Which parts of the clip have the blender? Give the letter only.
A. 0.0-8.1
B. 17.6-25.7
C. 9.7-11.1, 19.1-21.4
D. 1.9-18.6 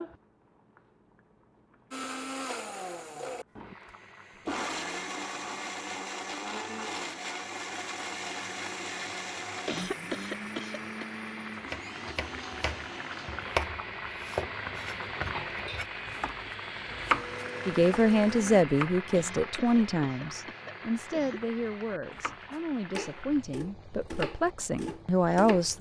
D.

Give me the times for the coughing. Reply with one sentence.
The coughing can be heard from 9.7 to 11.1 s and from 19.1 to 21.4 s.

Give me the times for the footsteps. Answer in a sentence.
You can't hear the footsteps here.